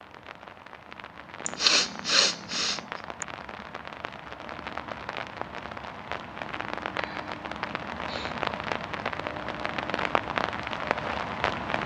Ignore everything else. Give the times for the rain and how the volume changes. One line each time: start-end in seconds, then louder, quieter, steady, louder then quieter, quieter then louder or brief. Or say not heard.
0.0-11.8 louder.